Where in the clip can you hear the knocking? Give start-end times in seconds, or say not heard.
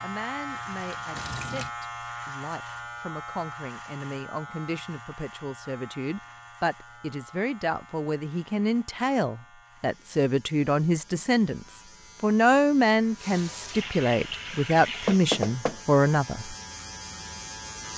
15.1-15.8.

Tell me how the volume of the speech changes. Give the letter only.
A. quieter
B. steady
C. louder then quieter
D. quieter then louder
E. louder
E.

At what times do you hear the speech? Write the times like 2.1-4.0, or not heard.
0.0-16.6.